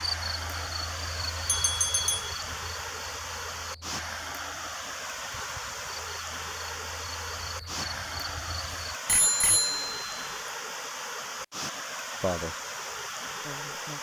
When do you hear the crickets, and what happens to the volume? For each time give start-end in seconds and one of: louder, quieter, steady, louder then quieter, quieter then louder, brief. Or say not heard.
0.0-8.9 quieter then louder.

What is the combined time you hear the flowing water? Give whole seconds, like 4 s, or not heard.
14 s.